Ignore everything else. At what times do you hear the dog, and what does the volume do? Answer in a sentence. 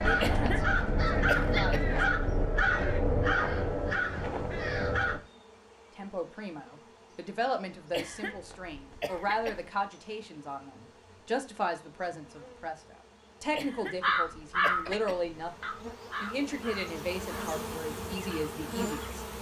The dog can't be heard in this clip.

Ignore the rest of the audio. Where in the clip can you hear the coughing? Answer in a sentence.
You can hear the coughing from 0.1 to 1.9 s, from 7.9 to 9.7 s and from 13.5 to 15.3 s.